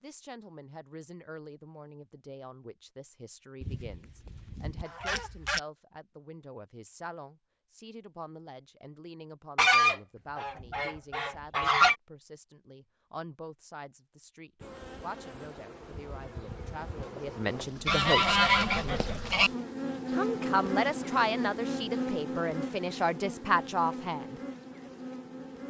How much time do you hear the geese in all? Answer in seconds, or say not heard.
6 s.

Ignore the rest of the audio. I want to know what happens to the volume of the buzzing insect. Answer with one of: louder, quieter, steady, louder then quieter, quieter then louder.
louder then quieter.